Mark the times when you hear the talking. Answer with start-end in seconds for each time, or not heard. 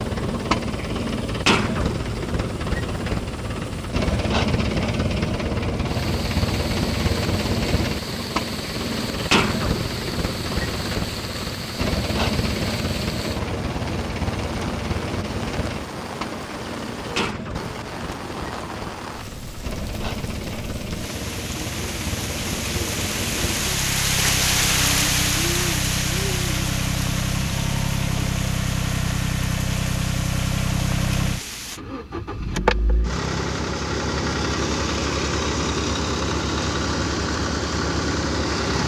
not heard.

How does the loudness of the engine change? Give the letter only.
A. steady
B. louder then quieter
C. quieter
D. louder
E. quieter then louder
E.